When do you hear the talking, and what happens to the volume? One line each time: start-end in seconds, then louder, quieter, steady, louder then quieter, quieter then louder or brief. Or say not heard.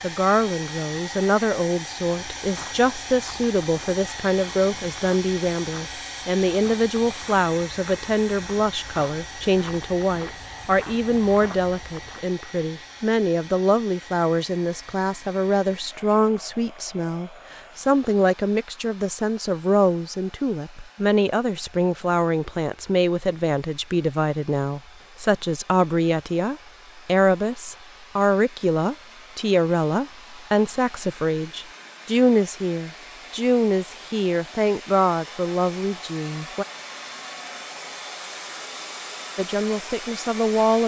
0.0-36.6 steady
39.4-40.8 brief.